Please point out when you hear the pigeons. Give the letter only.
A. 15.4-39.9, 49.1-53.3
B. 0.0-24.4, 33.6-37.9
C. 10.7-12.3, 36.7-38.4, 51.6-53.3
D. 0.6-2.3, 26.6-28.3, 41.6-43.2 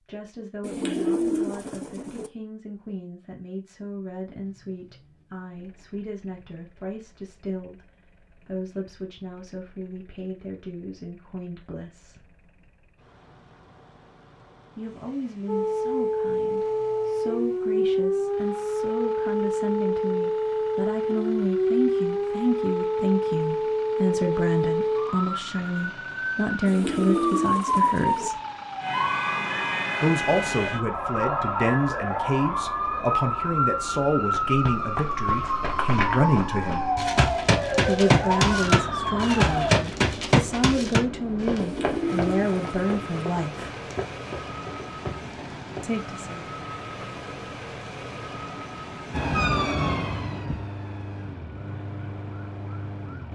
D.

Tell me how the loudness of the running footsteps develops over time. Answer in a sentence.
The loudness of the running footsteps goes up, then down.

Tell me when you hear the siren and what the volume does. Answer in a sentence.
The siren can be heard from 15.4 to 39.9 s, at a steady volume; and from 49.1 to 53.3 s, getting quieter.